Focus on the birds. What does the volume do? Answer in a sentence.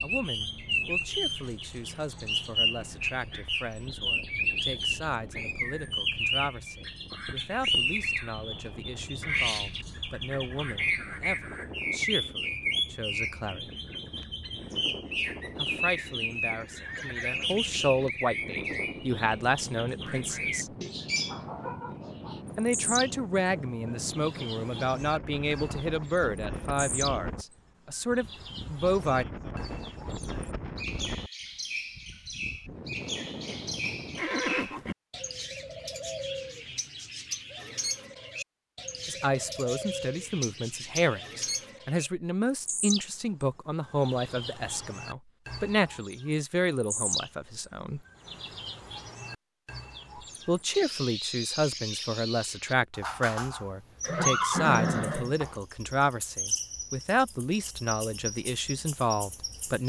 The volume of the birds goes down.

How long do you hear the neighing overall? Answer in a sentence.
The neighing can be heard for 4 seconds in total.